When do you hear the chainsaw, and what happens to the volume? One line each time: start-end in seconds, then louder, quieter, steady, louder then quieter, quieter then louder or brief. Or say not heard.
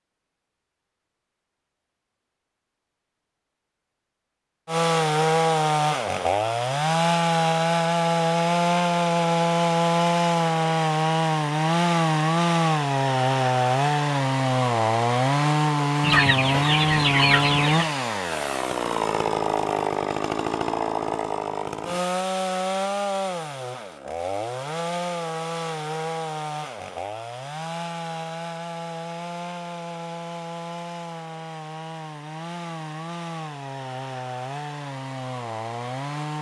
4.7-36.3 quieter.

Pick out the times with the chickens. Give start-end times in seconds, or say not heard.
16.0-17.9.